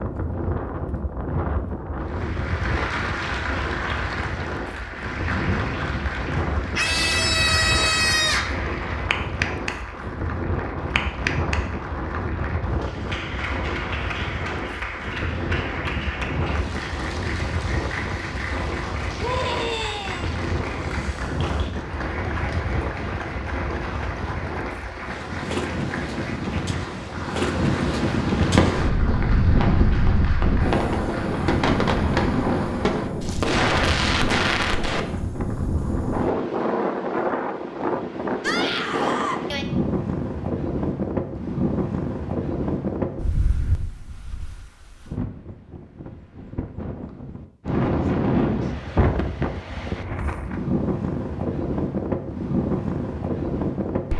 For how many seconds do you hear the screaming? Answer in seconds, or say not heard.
4 s.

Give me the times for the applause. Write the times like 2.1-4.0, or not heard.
2.0-31.4.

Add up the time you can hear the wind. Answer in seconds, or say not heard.
54 s.